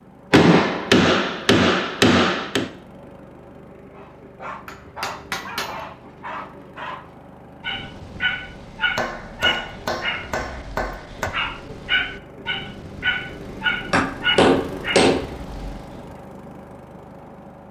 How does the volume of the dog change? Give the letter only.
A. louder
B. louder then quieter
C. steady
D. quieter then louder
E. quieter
A.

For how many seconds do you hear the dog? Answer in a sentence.
The dog can be heard for 12 seconds in total.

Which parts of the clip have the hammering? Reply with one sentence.
The hammering can be heard from 0.3 to 2.7 s, from 4.7 to 5.8 s, from 8.9 to 11.3 s and from 13.9 to 15.3 s.